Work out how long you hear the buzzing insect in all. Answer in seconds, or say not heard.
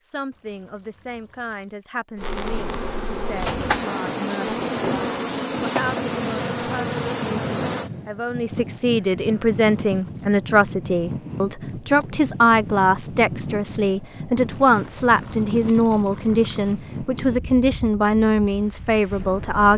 6 s.